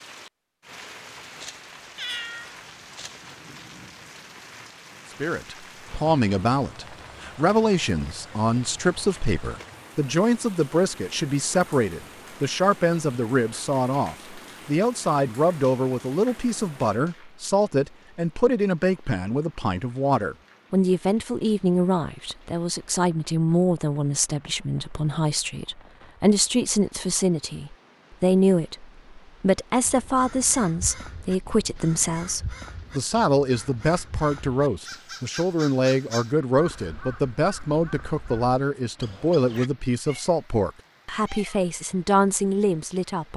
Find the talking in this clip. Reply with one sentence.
You can hear the talking from 5.2 to 43.3 s.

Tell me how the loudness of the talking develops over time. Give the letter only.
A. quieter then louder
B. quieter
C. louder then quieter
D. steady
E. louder
D.